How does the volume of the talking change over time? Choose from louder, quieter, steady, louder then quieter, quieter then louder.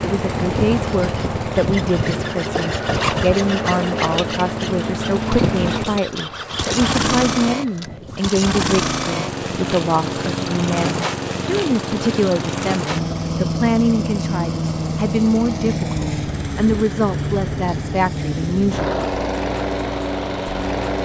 steady.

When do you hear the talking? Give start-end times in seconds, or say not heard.
0.0-19.1.